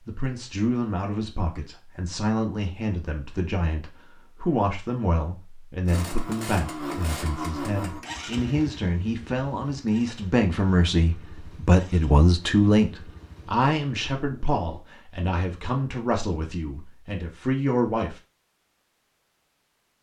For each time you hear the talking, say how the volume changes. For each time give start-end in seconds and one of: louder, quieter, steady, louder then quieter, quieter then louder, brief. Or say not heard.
0.1-18.2 louder then quieter.